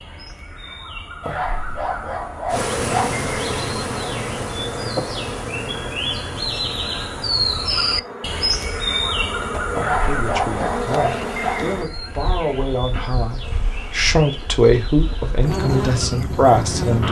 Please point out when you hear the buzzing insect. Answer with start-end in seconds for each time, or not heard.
2.5-17.0.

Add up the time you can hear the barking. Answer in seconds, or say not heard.
4 s.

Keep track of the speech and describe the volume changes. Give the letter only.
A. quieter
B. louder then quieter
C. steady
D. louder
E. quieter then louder
D.